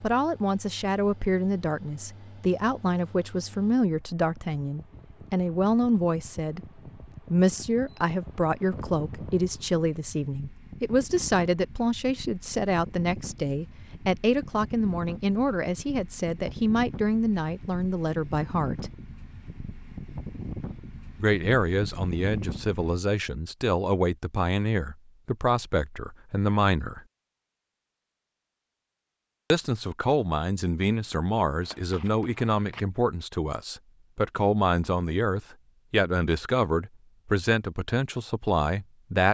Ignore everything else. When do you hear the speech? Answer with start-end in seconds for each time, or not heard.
0.0-18.9, 21.2-27.0, 29.5-39.2.